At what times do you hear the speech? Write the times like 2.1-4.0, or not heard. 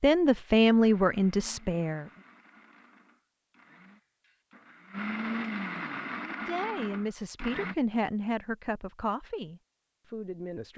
0.0-2.1, 6.2-10.7.